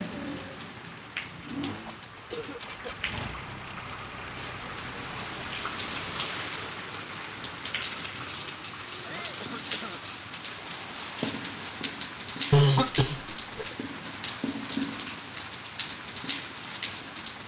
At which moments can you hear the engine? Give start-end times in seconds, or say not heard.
0.0-6.1.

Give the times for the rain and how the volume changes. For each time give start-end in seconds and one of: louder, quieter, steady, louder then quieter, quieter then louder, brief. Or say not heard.
0.0-17.4 louder.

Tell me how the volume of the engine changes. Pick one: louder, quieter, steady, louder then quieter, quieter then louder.
louder then quieter.